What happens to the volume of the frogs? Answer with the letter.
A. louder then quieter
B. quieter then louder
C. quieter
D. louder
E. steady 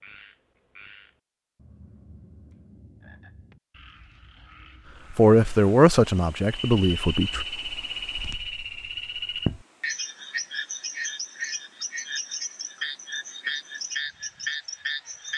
D.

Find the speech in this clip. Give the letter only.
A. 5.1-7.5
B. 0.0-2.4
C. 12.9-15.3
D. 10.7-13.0
A.